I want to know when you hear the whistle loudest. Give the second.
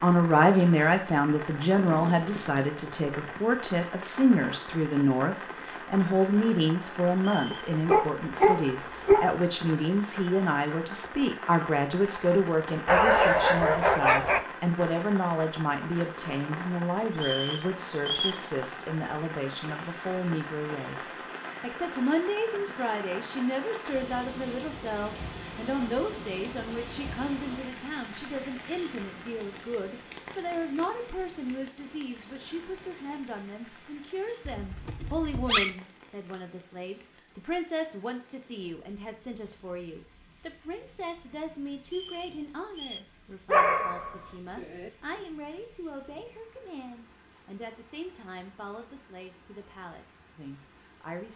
18 s.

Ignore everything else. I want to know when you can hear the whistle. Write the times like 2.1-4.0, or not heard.
7.2-7.7, 17.1-18.4, 41.9-43.0.